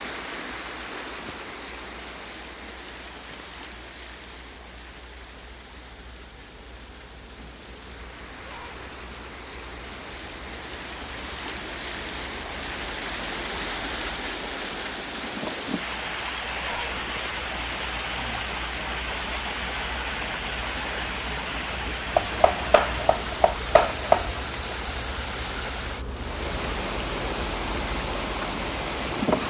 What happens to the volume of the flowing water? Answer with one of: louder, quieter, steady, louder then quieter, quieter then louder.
louder.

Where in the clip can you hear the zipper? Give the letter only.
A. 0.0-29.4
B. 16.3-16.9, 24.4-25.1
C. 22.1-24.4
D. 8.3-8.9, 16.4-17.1
D.